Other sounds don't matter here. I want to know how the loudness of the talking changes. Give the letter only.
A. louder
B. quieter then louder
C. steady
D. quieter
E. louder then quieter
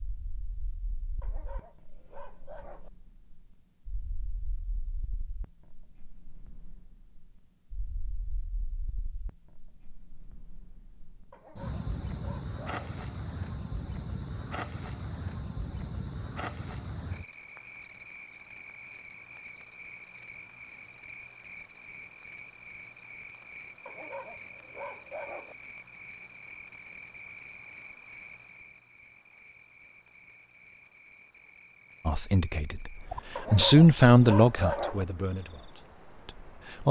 E.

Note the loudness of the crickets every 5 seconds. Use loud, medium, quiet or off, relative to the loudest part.
quiet, quiet, loud, loud, medium, medium, medium, quiet.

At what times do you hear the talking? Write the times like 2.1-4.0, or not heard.
32.0-36.8.